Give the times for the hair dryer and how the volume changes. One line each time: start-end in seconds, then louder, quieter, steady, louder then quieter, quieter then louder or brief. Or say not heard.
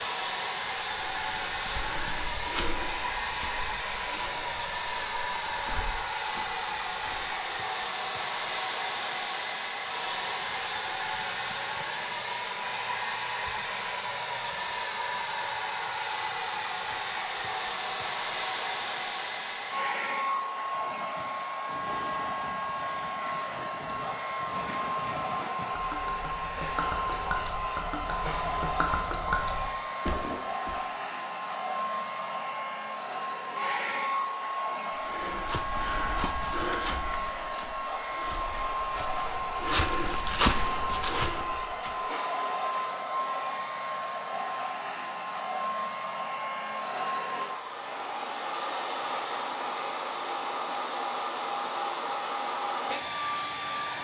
0.0-53.9 steady.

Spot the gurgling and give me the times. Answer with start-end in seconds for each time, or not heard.
20.6-30.8.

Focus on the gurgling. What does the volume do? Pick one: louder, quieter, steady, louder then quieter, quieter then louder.
louder.